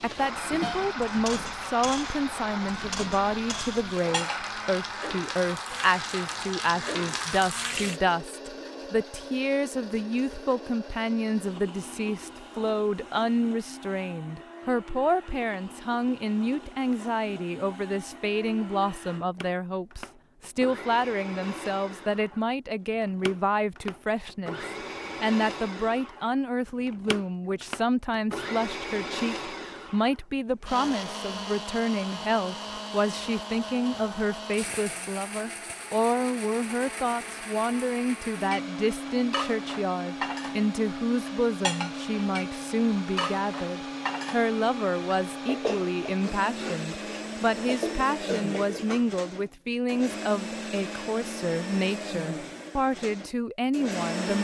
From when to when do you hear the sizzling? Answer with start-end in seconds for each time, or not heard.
0.0-8.0.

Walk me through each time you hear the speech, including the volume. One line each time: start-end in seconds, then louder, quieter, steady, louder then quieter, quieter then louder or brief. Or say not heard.
0.0-54.3 steady.